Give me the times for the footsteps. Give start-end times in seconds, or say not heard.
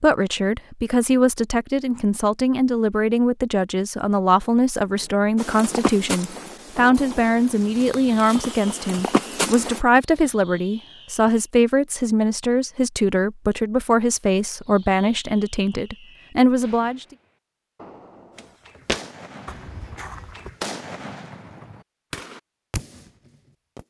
5.3-9.8, 18.4-20.5.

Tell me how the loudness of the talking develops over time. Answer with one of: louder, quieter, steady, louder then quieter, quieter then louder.
steady.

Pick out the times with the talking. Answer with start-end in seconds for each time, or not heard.
0.0-17.1.